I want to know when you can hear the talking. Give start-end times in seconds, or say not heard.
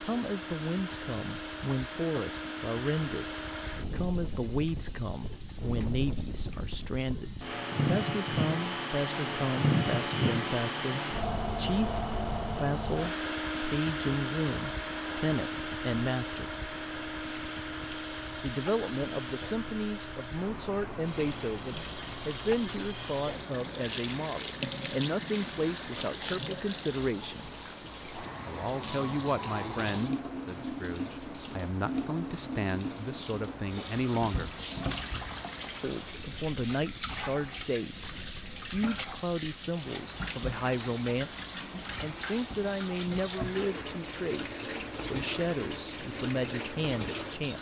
0.0-16.4, 18.4-27.5, 28.4-34.5, 35.8-47.5.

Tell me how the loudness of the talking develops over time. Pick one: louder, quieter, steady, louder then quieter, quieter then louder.
steady.